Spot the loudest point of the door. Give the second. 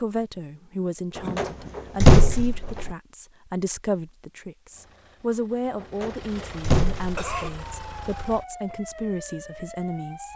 2 s.